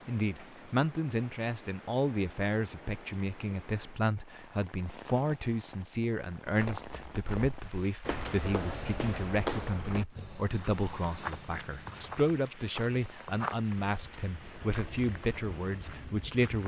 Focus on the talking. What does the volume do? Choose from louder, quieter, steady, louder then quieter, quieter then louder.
steady.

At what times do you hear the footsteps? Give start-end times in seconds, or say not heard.
6.4-16.6.